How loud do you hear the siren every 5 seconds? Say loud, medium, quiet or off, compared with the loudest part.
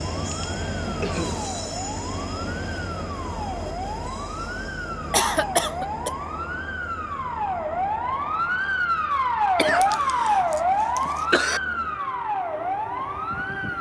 medium, loud, loud.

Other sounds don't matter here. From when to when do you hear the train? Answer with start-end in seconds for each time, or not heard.
0.0-13.7.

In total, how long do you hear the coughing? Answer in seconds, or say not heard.
4 s.